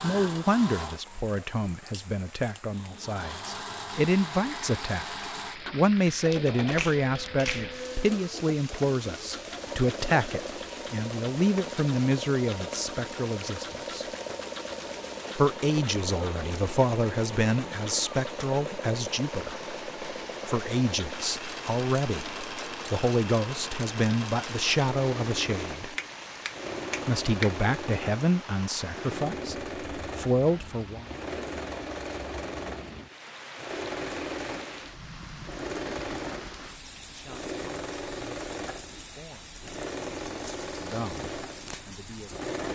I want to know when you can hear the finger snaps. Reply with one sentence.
You can hear the finger snaps from 6.3 to 7.8 s and from 25.9 to 27.5 s.